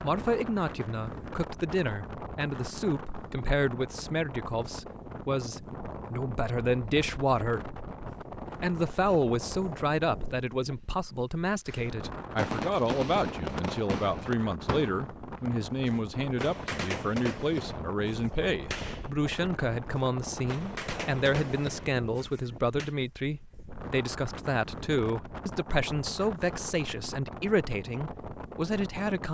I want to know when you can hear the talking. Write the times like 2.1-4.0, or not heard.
0.0-7.8, 8.6-29.2.